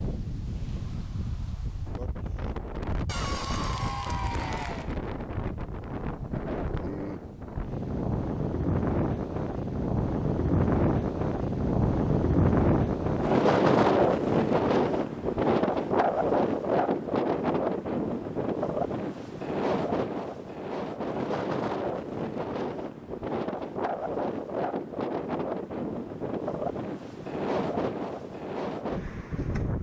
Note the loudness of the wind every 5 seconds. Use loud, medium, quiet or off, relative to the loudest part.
quiet, medium, loud, loud, medium, medium.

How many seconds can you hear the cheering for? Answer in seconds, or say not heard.
2 s.